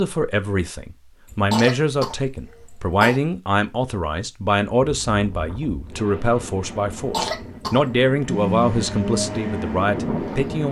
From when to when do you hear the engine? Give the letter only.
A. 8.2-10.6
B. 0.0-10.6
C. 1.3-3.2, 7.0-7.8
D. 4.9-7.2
A.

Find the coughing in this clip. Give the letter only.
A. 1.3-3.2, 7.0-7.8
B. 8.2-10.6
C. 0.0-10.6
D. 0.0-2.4
A.